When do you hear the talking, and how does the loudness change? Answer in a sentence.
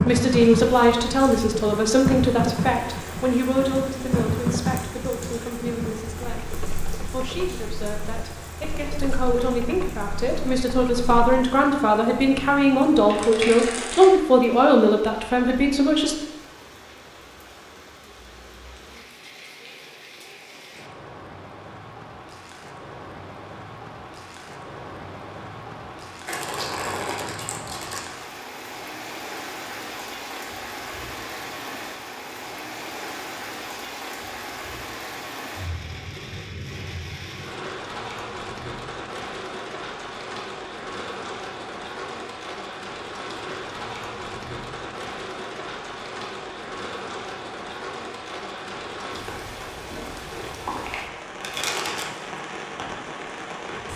The talking can be heard from 0.1 to 16.1 s, getting quieter then louder.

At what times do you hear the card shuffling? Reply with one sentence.
You can hear the card shuffling from 13.1 to 14.2 s, from 26.2 to 28.1 s and from 50.8 to 52.3 s.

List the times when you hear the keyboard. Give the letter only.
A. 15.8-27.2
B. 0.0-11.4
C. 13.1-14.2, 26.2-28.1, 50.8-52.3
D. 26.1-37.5
B.